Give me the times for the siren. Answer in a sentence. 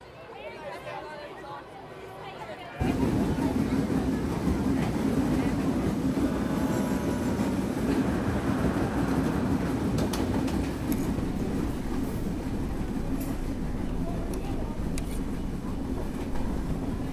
The siren can't be heard in this clip.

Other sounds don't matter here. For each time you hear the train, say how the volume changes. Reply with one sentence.
The train can be heard from 2.8 to 17.0 s, getting quieter.